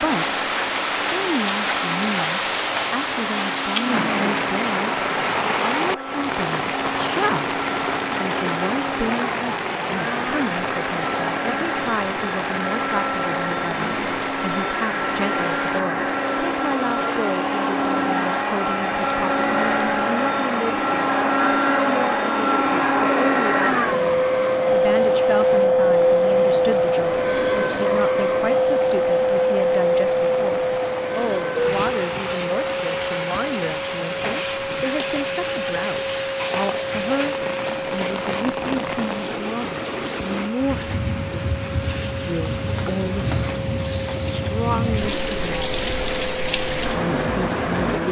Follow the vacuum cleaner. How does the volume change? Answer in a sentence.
The volume of the vacuum cleaner goes up, then down.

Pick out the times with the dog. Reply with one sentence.
You can't hear the dog here.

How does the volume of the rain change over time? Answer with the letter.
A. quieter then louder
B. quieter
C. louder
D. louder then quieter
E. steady
A.